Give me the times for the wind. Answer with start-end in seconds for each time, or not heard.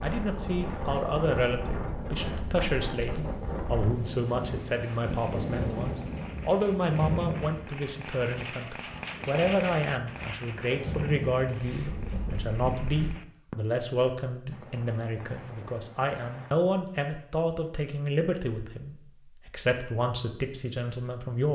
0.0-13.2.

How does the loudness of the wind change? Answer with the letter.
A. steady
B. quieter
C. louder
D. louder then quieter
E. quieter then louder
E.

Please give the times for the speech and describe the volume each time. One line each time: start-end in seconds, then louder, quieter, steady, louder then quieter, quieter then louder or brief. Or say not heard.
0.0-21.4 steady.